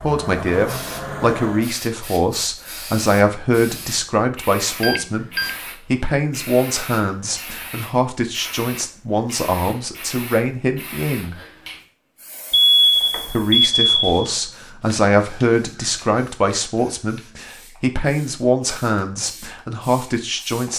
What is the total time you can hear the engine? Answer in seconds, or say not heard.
2 s.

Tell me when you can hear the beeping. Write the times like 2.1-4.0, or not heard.
4.8-5.5, 12.5-14.3.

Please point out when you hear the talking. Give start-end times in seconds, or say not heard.
0.0-11.3, 13.3-20.7.